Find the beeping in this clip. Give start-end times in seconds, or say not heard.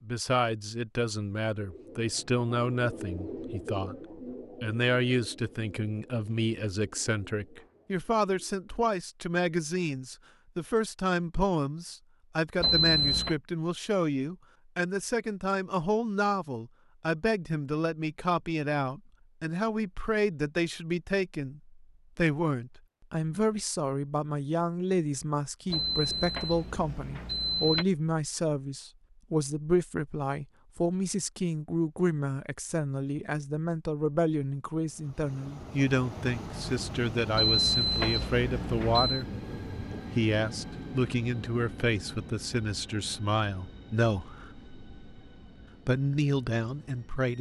12.6-13.3, 25.7-27.9, 37.4-39.2.